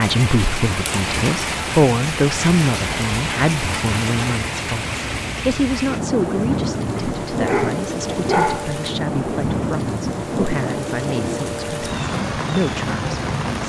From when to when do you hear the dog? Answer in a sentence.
The dog can be heard from 7.0 to 8.8 s.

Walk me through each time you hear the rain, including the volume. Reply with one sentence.
You can hear the rain from 0.0 to 13.6 s, at a steady volume.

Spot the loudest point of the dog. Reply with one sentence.
The volume of the dog peaks at 8 seconds.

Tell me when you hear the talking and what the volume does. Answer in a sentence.
The talking can be heard from 0.0 to 13.6 s, getting quieter.